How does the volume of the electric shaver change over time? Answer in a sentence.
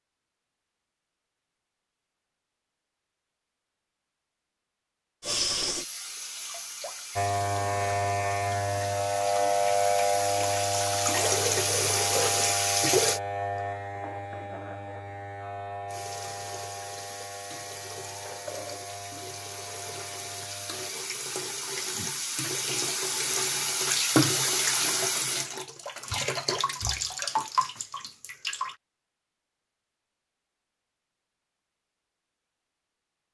The loudness of the electric shaver goes down.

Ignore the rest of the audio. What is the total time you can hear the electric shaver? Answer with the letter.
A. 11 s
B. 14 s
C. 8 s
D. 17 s
B.